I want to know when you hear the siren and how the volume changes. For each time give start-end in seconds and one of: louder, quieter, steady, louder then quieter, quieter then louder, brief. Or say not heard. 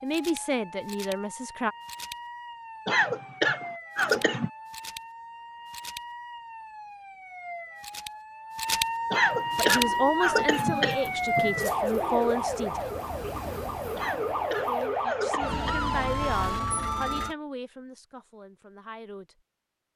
0.0-17.4 louder.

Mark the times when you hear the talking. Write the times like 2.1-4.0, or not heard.
0.0-1.8, 9.6-12.8, 14.7-19.4.